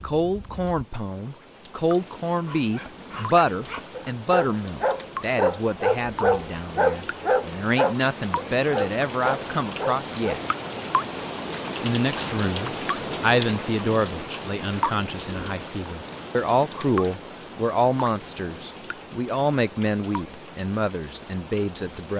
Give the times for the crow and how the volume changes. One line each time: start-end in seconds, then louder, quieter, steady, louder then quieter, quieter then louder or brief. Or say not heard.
not heard.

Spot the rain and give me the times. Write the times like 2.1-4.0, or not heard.
0.0-22.1.